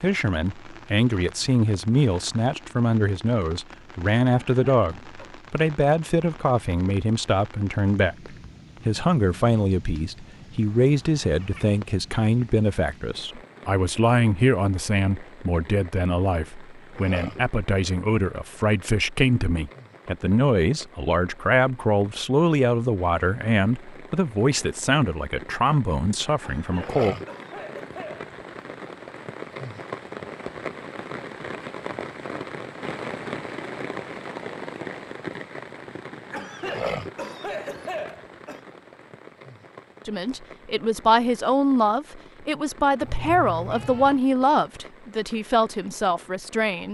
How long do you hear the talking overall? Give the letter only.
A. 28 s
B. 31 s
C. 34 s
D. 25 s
C.